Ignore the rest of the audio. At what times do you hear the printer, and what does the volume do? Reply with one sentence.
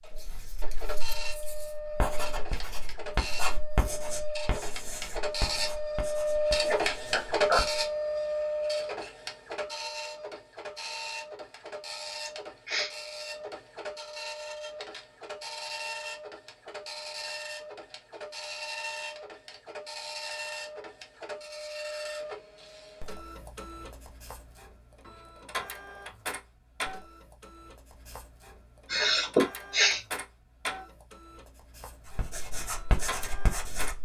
The printer can be heard from 0.0 to 34.0 s, getting quieter.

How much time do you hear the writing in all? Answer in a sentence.
You can hear the writing for 10 seconds altogether.